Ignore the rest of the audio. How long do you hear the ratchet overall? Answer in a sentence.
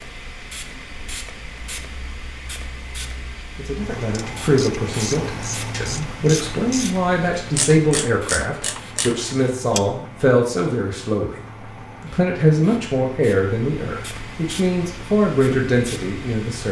You can hear the ratchet for 6 seconds altogether.